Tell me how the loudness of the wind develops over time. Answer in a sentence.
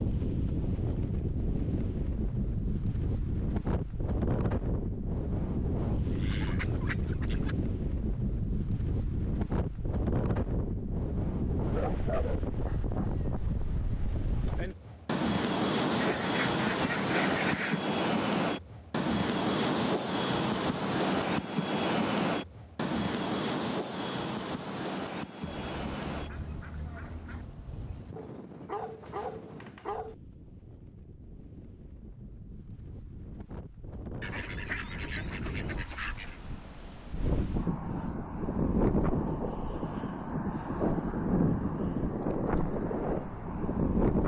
The volume of the wind goes down, then up.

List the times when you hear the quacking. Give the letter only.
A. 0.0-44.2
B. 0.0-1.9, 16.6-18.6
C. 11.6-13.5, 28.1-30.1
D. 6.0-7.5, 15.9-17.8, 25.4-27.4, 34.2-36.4
D.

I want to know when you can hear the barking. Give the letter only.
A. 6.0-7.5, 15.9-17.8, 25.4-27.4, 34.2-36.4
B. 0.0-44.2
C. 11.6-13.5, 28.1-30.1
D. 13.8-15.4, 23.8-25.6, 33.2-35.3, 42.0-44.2
C.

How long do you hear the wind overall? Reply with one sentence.
The wind can be heard for 44 seconds in total.